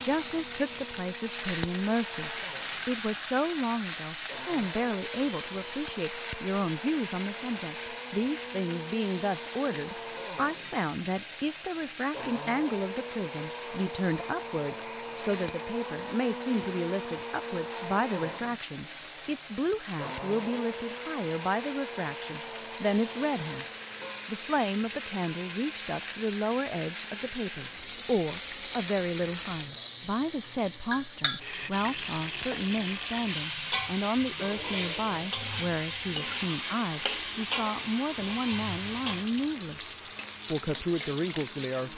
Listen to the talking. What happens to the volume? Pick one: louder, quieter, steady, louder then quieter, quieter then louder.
steady.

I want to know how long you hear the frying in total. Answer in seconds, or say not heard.
42 s.